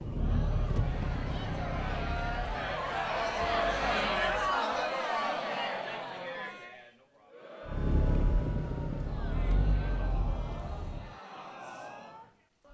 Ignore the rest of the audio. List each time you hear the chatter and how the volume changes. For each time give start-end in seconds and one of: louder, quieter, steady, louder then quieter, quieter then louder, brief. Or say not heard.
0.0-12.6 louder then quieter.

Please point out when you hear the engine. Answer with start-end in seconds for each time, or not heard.
0.0-4.7, 7.7-11.2.